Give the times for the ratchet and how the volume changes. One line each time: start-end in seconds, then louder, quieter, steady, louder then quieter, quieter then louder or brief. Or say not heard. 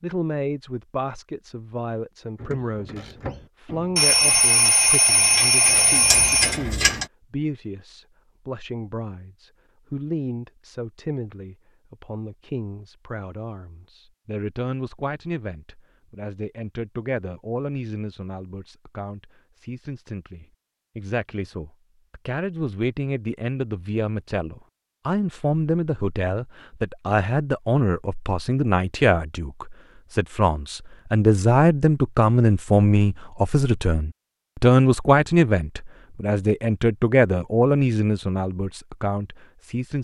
2.4-7.0 quieter then louder.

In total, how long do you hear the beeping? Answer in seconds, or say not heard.
3 s.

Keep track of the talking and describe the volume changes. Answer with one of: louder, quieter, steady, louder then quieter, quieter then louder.
louder.